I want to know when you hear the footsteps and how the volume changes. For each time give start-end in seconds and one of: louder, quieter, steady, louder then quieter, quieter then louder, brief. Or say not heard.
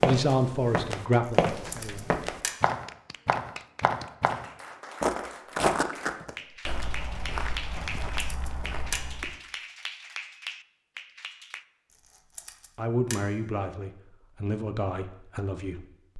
0.0-9.3 quieter.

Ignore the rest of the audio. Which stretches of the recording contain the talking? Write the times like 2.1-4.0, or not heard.
0.0-2.0, 12.8-16.1.